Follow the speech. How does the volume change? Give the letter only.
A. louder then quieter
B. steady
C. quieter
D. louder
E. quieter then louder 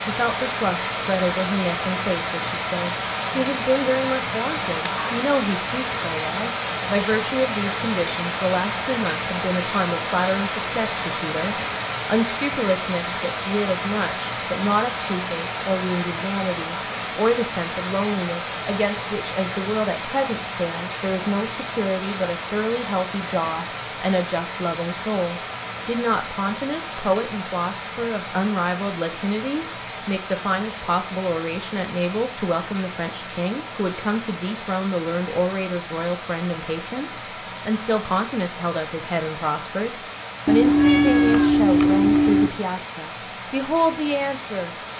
B.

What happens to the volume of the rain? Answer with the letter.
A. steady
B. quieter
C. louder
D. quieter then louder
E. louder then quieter
B.